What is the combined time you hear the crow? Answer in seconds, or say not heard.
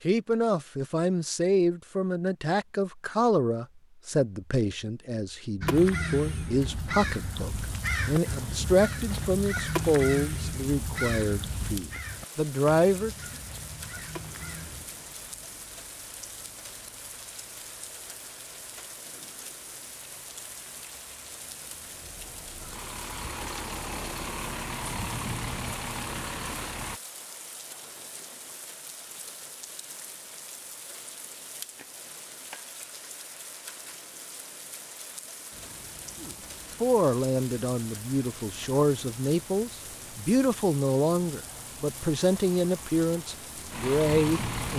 9 s.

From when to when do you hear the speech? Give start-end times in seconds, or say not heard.
0.0-13.2, 36.2-44.7.